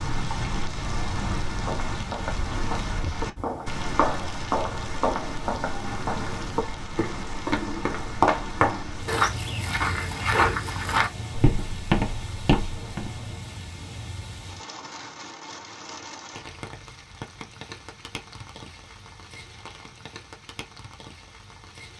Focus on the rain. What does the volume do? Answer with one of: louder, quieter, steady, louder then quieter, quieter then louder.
quieter.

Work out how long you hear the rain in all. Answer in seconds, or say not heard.
22 s.